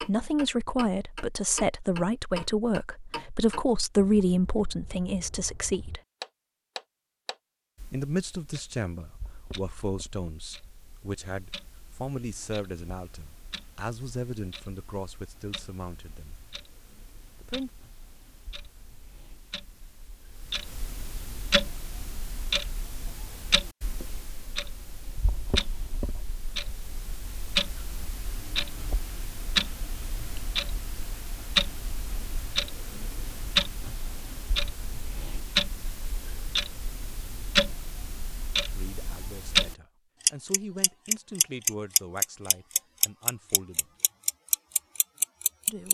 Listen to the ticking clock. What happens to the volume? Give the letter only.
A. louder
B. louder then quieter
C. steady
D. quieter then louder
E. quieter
D.